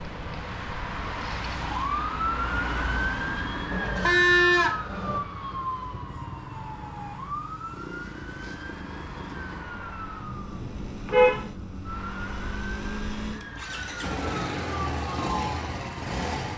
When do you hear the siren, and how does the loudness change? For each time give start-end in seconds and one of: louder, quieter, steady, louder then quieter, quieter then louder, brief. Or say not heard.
0.0-16.5 quieter.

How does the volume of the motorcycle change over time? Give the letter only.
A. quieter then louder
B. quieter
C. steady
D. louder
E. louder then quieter
D.